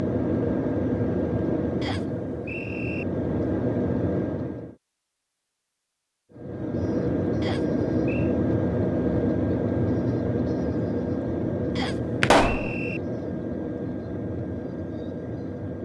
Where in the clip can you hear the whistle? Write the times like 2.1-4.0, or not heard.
1.8-3.0, 7.4-8.3, 11.8-13.0.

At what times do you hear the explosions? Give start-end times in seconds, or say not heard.
12.2-12.8.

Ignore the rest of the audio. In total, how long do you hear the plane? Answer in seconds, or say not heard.
14 s.